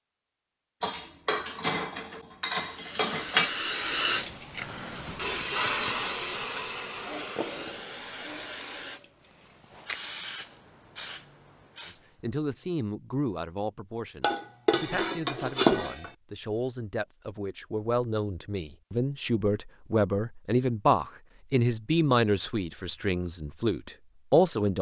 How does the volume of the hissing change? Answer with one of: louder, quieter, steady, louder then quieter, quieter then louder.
quieter.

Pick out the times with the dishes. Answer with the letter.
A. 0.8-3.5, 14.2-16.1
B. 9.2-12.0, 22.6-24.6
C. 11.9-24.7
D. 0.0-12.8
A.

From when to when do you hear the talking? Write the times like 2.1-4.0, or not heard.
11.9-24.7.